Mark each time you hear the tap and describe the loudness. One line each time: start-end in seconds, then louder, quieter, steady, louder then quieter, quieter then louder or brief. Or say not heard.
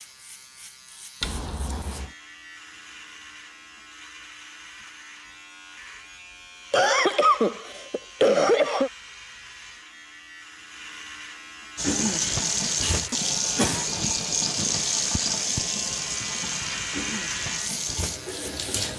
11.8-18.9 quieter.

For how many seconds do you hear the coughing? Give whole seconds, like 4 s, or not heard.
4 s.